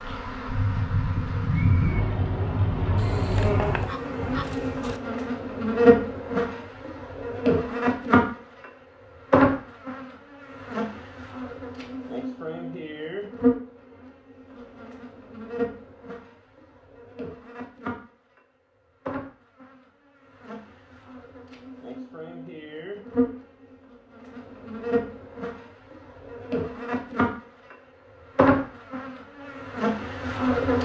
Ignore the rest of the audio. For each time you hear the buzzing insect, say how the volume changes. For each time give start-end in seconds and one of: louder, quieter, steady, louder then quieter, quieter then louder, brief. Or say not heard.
0.0-30.8 quieter then louder.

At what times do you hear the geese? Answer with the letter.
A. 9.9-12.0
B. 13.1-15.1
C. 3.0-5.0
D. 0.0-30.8
C.